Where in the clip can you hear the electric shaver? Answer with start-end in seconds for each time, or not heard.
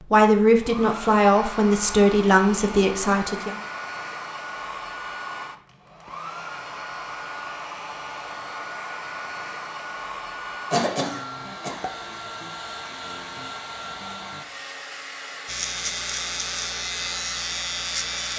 15.4-18.3.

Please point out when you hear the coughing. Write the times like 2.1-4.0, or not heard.
10.7-11.8.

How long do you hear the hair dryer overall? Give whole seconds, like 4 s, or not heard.
18 s.